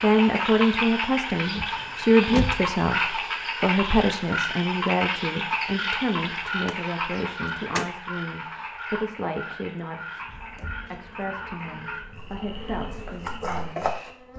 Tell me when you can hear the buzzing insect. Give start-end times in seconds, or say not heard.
10.2-14.3.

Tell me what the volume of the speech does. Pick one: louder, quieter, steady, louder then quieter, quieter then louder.
quieter.